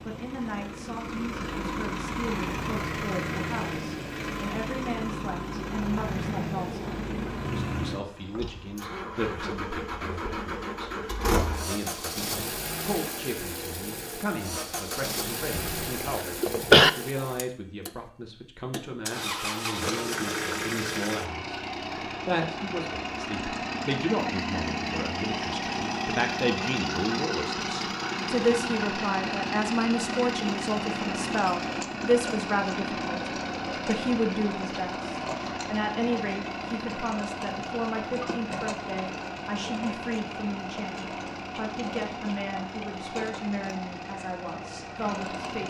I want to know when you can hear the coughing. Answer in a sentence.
You can hear the coughing from 15.5 to 16.9 s.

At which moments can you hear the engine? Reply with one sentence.
You can hear the engine from 0.0 to 45.6 s.